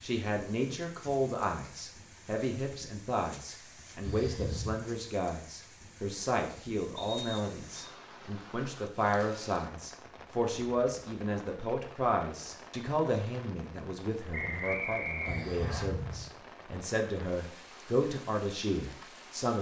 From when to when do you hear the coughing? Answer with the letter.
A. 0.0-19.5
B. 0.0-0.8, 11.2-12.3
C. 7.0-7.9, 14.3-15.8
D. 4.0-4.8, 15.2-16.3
D.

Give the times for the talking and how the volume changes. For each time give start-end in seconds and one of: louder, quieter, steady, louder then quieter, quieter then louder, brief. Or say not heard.
0.0-19.5 steady.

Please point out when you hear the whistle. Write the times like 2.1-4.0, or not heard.
7.0-7.9, 14.3-15.8.